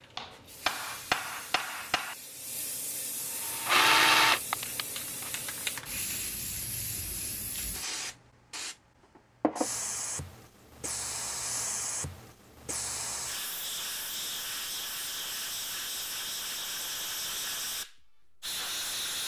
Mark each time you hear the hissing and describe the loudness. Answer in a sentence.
You can hear the hissing from 0.0 to 19.2 s, getting louder.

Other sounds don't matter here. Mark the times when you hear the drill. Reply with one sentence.
You can hear the drill from 3.4 to 5.3 s.